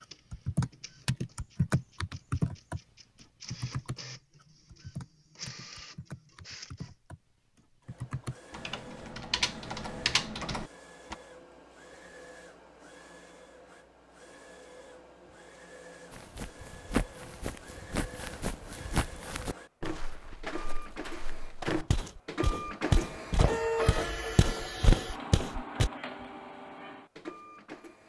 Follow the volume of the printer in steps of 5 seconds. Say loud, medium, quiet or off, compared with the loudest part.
quiet, quiet, quiet, quiet, loud, medium.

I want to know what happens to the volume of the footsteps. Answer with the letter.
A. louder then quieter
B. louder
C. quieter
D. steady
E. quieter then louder
E.